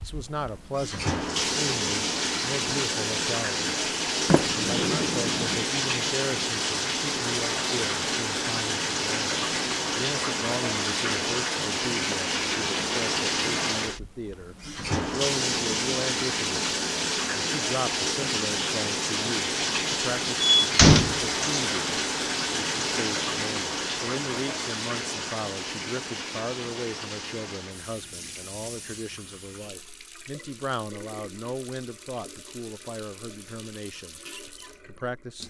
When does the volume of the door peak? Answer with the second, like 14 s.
21 s.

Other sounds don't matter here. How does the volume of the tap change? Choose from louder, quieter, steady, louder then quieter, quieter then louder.
quieter.